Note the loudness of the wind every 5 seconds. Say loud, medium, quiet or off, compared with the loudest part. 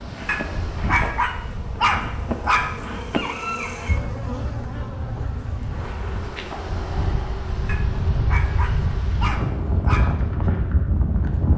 medium, loud, loud.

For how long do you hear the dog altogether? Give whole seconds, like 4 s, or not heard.
5 s.